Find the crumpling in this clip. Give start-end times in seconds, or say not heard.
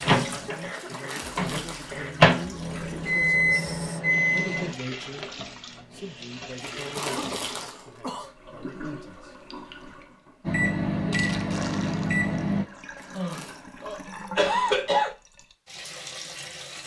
0.8-2.0, 6.6-8.0, 12.9-13.7.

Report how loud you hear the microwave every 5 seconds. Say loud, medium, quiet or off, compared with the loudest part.
loud, off, loud, off.